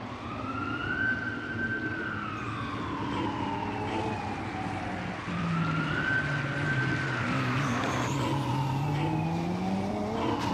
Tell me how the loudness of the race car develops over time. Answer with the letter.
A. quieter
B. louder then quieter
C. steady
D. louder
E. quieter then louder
D.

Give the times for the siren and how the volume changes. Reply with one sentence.
You can hear the siren from 0.0 to 10.4 s, at a steady volume.